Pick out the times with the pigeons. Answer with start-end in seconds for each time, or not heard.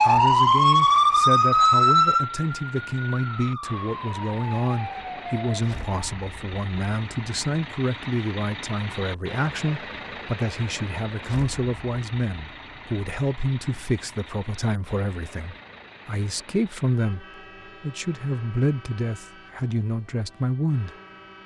not heard.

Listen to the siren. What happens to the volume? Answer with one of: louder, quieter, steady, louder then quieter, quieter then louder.
quieter.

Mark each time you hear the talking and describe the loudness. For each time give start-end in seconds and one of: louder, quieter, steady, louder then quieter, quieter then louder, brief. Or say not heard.
0.0-20.9 steady.